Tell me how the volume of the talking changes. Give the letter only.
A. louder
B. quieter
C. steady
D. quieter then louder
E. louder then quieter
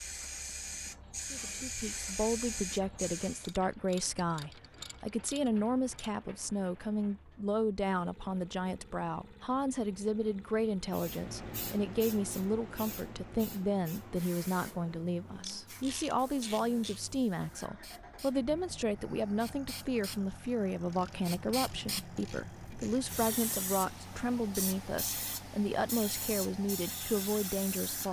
C.